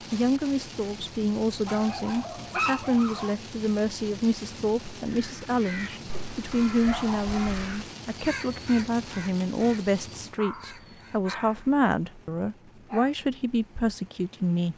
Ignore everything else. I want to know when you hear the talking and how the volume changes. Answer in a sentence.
You can hear the talking from 0.1 to 14.7 s, at a steady volume.